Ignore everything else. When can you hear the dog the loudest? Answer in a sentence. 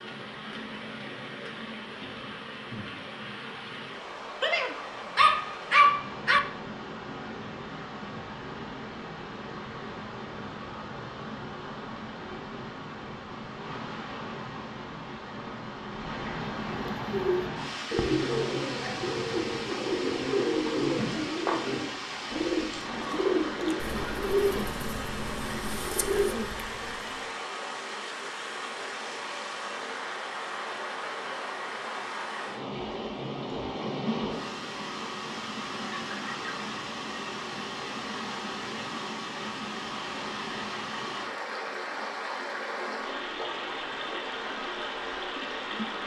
The loudest moment of the dog is at 6 seconds.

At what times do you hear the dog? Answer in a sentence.
You can hear the dog from 4.4 to 6.4 s.